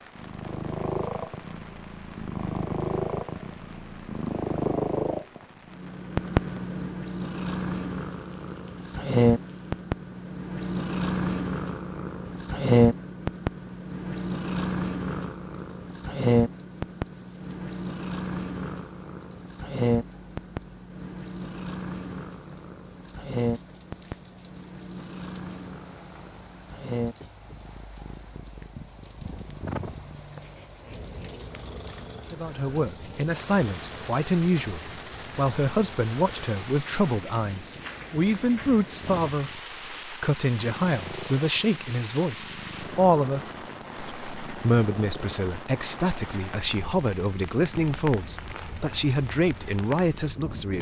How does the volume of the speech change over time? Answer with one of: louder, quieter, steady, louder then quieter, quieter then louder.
steady.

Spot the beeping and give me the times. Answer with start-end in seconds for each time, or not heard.
not heard.